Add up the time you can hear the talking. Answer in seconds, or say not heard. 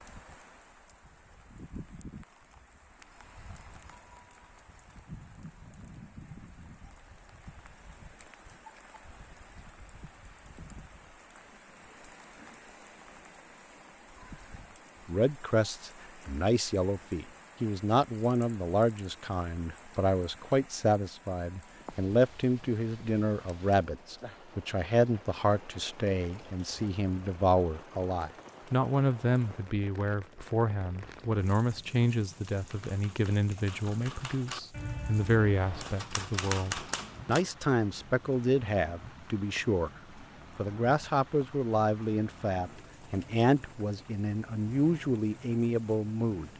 31 s.